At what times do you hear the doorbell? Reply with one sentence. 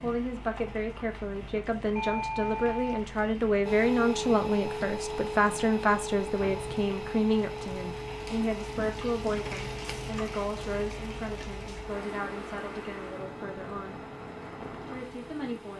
The doorbell can be heard from 1.9 to 3.0 s.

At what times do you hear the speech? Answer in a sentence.
You can hear the speech from 0.0 to 14.1 s and from 14.8 to 15.7 s.